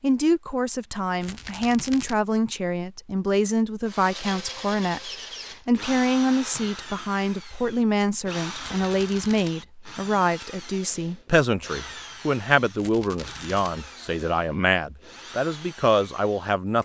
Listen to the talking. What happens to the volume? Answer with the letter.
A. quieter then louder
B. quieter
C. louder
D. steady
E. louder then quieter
D.